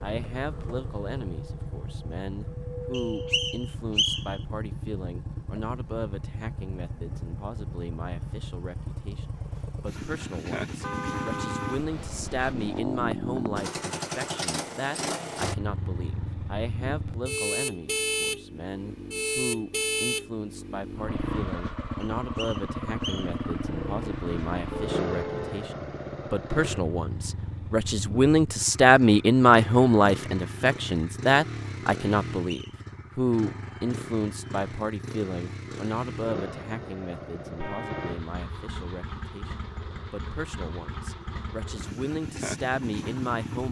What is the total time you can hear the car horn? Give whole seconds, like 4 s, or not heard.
4 s.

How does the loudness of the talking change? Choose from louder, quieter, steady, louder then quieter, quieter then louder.
louder then quieter.